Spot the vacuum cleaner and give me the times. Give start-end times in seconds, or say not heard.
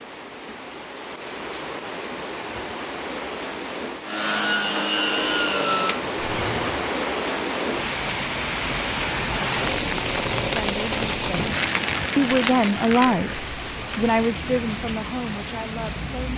4.0-7.0.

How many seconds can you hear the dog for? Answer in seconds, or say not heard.
not heard.